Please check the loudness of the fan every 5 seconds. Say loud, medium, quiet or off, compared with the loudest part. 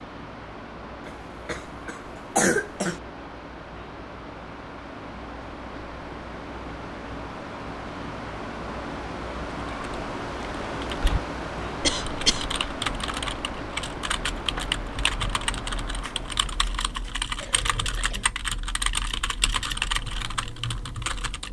medium, loud, loud, medium, off.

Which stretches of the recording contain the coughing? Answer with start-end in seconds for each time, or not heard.
1.1-3.0, 11.8-12.6, 17.4-18.2.